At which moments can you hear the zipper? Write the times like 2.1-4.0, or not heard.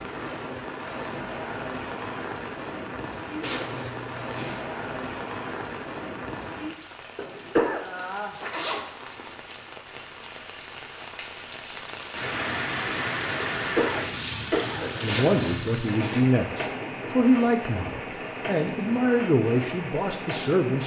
3.4-4.6, 8.0-9.4, 15.1-16.2.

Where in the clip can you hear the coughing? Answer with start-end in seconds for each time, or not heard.
7.2-7.9, 13.6-15.2.